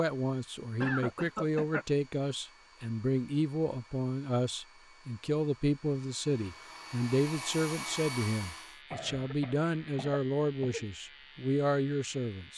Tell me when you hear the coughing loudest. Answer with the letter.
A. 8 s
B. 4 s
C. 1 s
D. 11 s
C.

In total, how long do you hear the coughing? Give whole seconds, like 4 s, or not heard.
3 s.